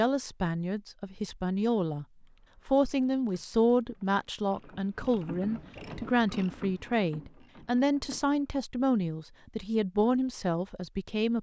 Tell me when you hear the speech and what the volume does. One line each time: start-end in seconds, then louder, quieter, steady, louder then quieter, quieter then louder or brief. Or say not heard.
0.0-2.0 brief
2.6-11.3 steady.